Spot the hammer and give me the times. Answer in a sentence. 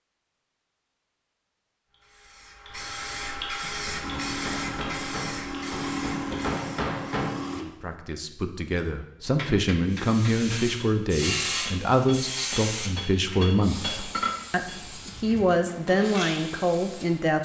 The hammer can be heard from 3.6 to 7.4 s and from 9.2 to 14.8 s.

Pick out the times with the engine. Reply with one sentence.
You can hear the engine from 4.0 to 7.7 s.